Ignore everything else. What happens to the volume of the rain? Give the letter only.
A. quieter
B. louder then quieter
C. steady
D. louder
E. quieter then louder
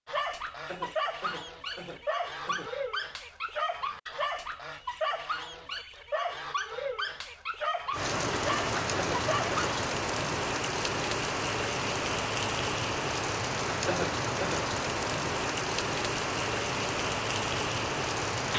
C.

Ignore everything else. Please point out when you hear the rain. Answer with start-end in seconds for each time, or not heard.
7.9-18.5.